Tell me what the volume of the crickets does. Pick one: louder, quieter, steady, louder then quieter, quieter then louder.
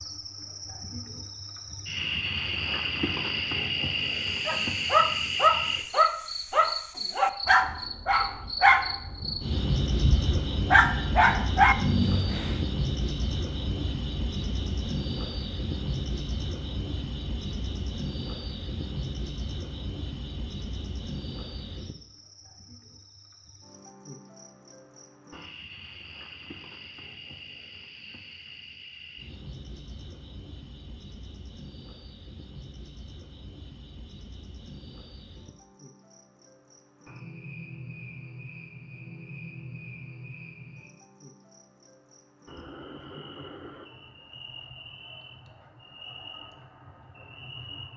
quieter.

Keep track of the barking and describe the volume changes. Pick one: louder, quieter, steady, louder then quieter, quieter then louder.
quieter then louder.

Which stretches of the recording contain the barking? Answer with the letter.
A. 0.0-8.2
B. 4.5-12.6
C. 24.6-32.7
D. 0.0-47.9
B.